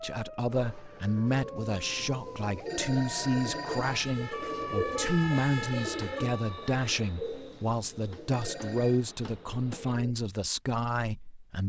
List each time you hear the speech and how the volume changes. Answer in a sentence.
The speech can be heard from 0.0 to 11.6 s, at a steady volume.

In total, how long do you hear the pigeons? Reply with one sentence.
The pigeons can be heard for 10 seconds in total.